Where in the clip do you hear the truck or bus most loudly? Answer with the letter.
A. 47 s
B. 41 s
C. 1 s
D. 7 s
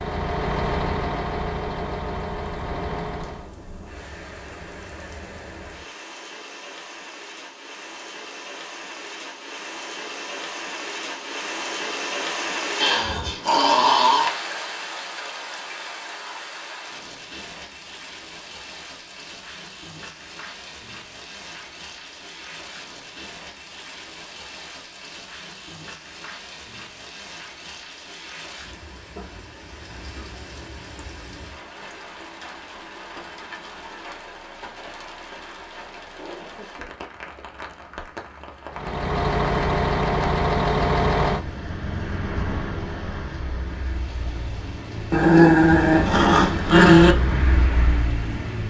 B.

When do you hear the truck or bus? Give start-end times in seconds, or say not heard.
0.0-3.5, 38.7-48.6.